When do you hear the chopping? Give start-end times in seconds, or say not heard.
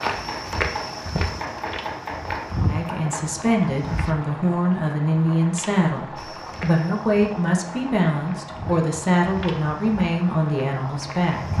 0.1-3.5.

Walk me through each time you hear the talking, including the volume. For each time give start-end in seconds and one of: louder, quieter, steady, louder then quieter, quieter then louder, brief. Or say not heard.
2.6-11.5 steady.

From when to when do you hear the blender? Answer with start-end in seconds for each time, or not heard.
not heard.